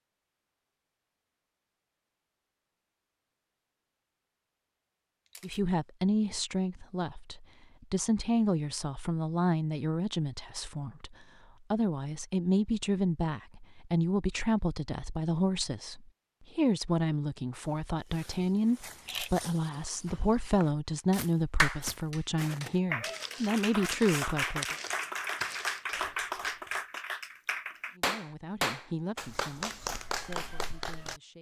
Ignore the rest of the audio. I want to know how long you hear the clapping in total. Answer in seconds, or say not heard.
10 s.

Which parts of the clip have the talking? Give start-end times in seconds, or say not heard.
5.4-24.8, 27.9-31.3.